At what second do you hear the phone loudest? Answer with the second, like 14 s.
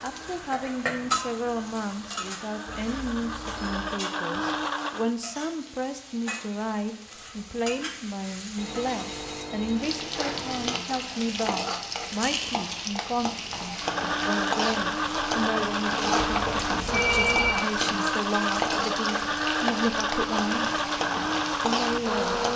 17 s.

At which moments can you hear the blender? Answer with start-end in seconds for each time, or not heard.
0.0-5.1, 13.8-22.5.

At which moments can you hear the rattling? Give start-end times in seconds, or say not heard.
12.1-12.8.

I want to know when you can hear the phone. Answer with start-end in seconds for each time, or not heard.
2.6-4.0, 8.6-10.7, 16.2-17.6.